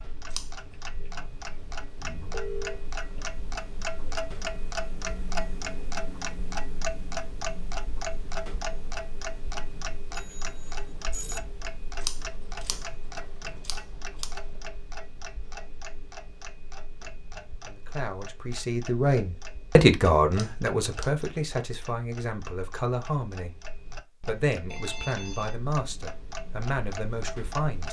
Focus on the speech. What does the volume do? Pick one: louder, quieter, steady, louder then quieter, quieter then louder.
quieter.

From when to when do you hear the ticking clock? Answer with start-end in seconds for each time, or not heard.
0.0-27.8.